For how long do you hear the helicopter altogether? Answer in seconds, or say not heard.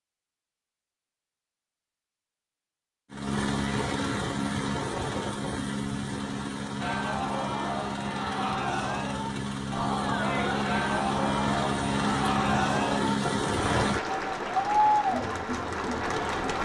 11 s.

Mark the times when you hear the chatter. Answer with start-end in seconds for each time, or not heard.
6.8-16.6.